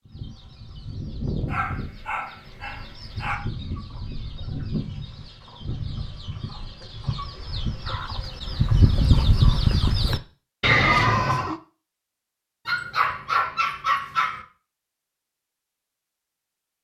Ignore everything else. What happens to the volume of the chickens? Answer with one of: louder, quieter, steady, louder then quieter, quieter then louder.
louder.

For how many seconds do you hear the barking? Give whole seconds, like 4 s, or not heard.
4 s.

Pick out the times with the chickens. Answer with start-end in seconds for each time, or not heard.
0.1-11.6.